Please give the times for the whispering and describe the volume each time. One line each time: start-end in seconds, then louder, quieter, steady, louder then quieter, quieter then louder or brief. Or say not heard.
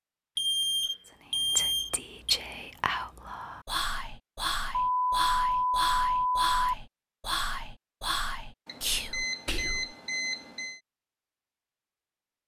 1.1-9.9 steady.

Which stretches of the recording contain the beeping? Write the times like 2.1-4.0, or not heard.
0.3-2.4, 4.8-6.5, 8.7-10.8.